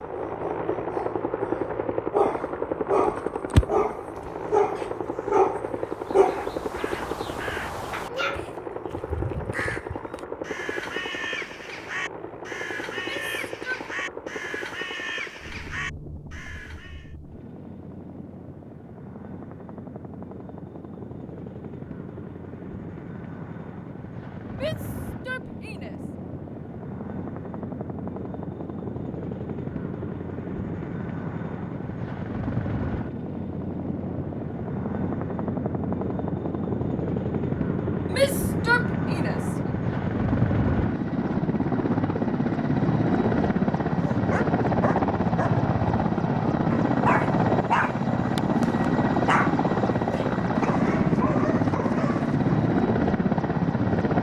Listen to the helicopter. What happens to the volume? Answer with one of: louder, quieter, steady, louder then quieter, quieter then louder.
quieter then louder.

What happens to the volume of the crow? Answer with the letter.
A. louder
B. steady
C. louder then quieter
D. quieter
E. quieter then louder
B.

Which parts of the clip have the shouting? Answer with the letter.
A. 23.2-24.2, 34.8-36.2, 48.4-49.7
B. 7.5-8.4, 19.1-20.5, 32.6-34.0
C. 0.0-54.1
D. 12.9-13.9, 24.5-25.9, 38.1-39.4
D.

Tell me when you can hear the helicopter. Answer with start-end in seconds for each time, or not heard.
0.0-54.1.